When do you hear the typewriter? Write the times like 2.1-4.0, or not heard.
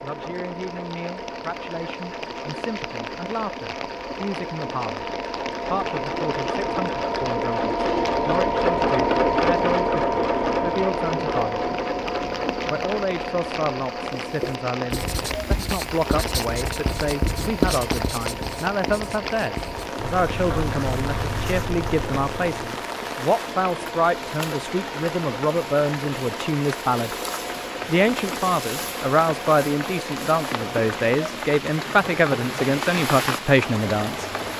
not heard.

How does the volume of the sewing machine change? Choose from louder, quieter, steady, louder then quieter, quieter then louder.
louder then quieter.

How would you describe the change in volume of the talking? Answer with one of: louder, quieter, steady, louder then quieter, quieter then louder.
louder.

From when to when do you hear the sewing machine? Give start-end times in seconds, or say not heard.
0.0-34.5.